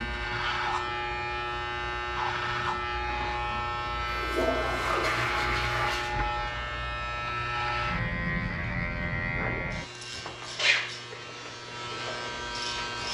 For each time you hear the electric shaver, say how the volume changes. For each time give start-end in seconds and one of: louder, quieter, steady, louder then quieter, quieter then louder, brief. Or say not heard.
0.0-13.0 steady.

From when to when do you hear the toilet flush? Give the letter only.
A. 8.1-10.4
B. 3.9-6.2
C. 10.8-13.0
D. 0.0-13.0
B.